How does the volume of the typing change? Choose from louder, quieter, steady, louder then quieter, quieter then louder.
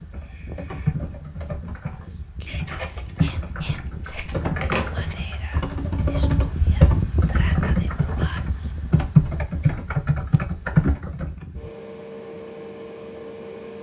louder.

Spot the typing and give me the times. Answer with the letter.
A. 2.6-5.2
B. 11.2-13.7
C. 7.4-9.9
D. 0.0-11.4
D.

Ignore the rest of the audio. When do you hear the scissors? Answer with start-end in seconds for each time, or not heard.
2.6-5.2.